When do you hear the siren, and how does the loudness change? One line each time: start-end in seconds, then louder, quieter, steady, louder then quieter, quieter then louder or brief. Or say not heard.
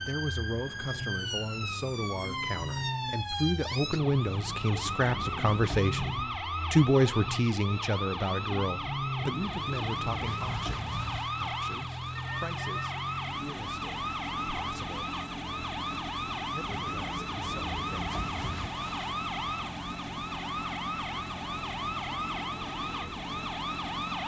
0.0-24.2 steady.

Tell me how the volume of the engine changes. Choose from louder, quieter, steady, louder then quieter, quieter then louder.
steady.